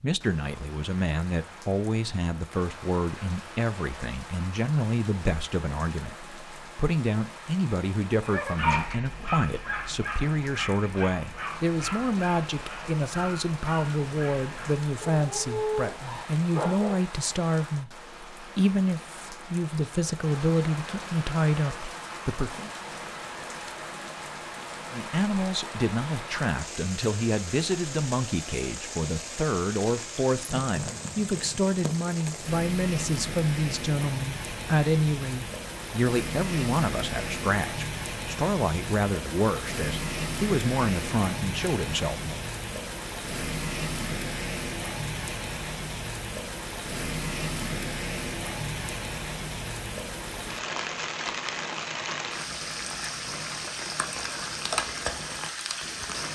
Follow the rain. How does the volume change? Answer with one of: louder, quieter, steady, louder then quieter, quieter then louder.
louder.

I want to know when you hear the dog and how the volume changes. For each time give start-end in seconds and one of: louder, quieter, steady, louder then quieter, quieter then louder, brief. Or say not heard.
8.2-17.0 quieter then louder.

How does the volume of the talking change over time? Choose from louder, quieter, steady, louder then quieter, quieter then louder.
steady.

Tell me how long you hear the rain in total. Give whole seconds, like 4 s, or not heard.
56 s.